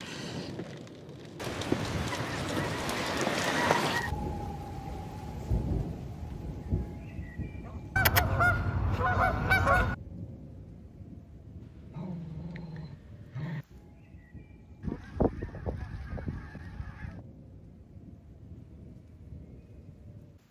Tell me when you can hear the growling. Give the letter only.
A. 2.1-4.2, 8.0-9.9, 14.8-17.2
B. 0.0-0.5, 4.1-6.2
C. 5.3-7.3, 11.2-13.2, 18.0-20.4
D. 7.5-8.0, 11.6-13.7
D.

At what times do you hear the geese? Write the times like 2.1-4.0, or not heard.
2.1-4.2, 8.0-9.9, 14.8-17.2.